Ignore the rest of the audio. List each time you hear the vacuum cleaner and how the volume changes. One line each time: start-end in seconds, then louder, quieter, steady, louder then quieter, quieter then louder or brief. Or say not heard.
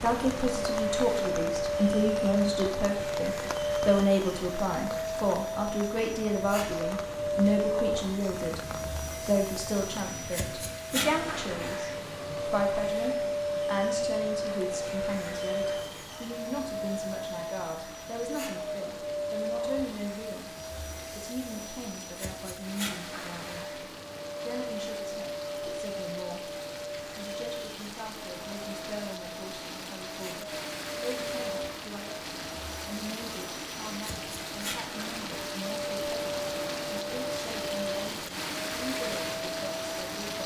0.0-40.4 quieter.